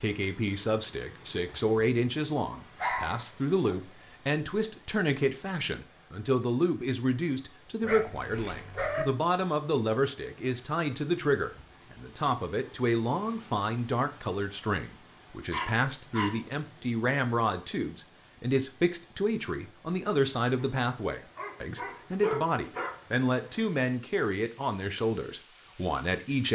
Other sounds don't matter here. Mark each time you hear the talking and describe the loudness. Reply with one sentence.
You can hear the talking from 0.0 to 26.5 s, at a steady volume.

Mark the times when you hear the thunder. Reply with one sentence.
The thunder can't be heard in this clip.